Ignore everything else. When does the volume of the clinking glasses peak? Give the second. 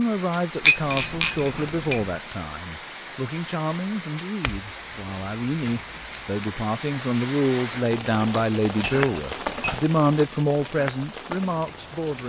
1 s.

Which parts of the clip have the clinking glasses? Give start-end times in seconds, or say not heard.
0.7-2.0, 4.4-6.5, 8.8-9.9.